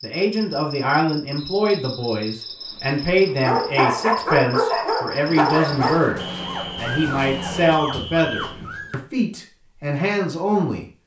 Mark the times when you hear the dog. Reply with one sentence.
The dog can be heard from 3.4 to 9.0 s.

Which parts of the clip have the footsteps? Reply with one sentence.
The footsteps can't be heard in this clip.